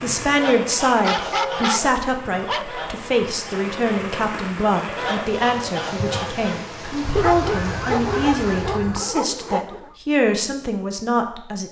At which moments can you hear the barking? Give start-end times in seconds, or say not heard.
1.0-2.6, 7.2-9.9.